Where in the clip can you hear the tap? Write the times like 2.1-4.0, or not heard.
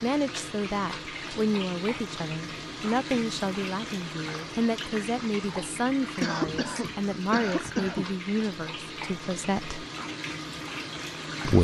0.0-11.5.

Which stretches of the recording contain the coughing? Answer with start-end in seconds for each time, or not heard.
6.2-8.1.